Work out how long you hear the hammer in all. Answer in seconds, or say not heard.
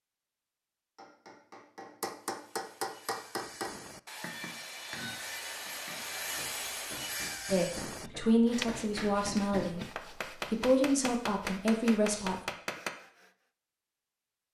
12 s.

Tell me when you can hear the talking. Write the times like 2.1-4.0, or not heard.
7.5-12.3.